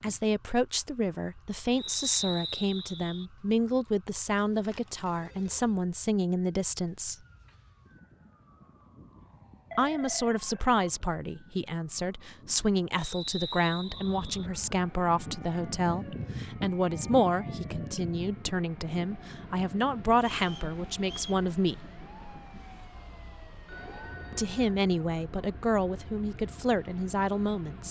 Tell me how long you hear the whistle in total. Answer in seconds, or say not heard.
4 s.